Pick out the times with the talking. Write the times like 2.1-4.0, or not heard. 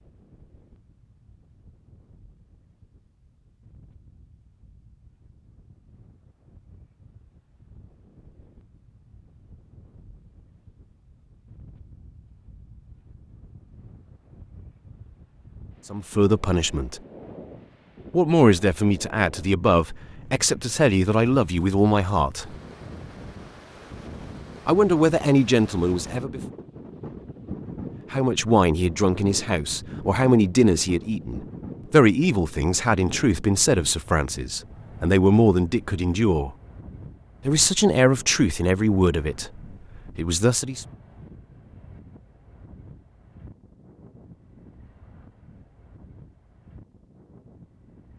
15.9-17.0, 18.1-22.6, 24.6-26.4, 28.1-36.5, 37.5-40.9.